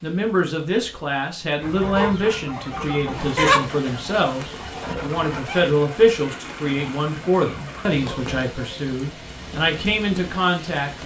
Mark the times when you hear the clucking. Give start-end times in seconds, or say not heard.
1.6-8.8.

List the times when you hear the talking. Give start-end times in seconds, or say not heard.
0.0-11.0.